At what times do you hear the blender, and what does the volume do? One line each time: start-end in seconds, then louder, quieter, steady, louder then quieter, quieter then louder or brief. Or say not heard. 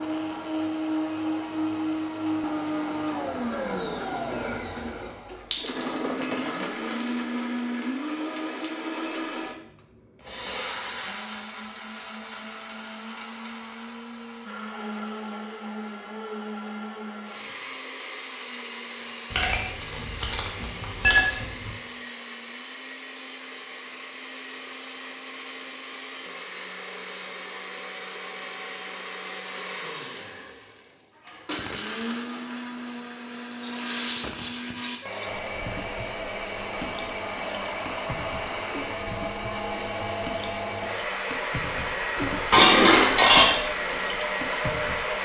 0.0-45.2 quieter then louder.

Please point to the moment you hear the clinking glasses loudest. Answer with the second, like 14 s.
43 s.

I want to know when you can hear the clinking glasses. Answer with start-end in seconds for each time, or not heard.
5.5-7.3, 19.3-21.7, 42.5-43.5.